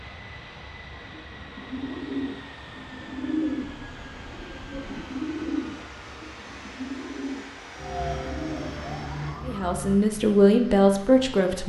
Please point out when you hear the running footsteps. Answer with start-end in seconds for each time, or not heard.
not heard.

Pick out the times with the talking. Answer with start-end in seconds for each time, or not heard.
9.4-11.6.